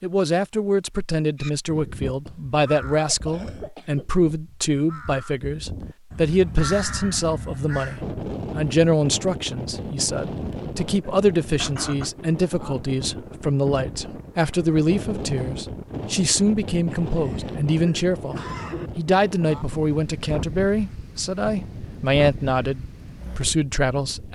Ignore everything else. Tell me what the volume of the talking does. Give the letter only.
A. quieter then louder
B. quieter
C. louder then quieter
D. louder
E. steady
E.